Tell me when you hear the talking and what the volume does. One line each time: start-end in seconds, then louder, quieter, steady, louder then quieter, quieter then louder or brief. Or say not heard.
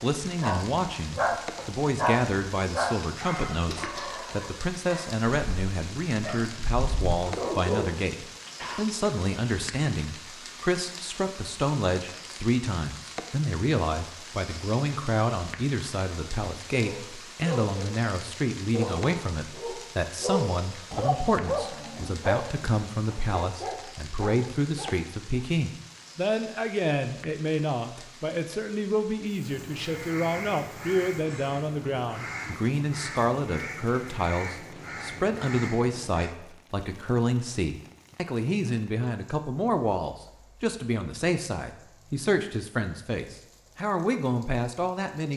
0.0-45.3 steady.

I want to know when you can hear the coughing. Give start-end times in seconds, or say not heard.
3.6-4.4.